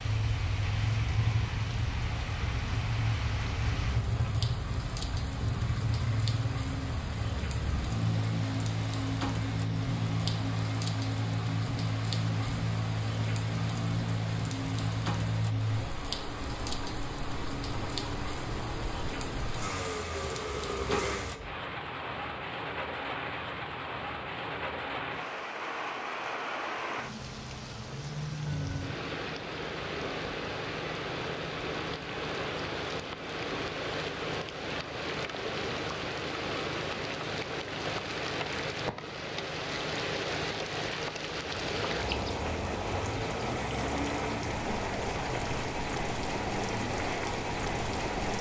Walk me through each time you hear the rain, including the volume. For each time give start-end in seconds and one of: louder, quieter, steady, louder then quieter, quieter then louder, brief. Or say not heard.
0.0-48.3 louder.